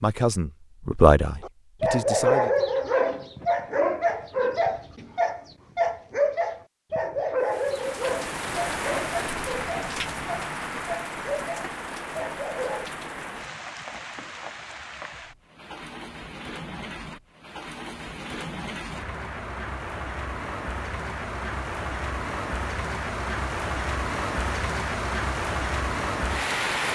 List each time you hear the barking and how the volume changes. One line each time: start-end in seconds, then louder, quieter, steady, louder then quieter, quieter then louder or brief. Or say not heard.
1.4-12.9 quieter.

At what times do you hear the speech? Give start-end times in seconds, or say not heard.
0.0-2.5.